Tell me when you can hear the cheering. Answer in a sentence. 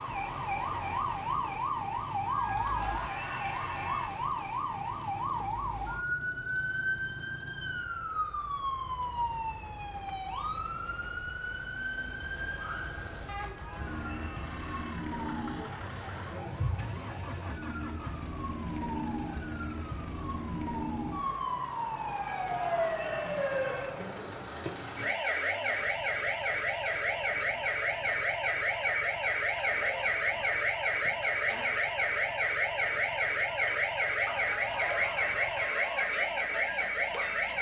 The cheering can be heard from 2.2 to 4.0 s, from 13.3 to 15.0 s, from 22.1 to 23.9 s and from 34.5 to 36.1 s.